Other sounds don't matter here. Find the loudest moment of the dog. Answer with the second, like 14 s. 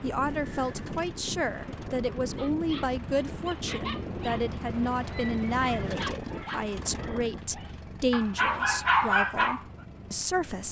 9 s.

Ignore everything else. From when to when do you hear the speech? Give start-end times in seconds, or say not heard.
0.0-10.6.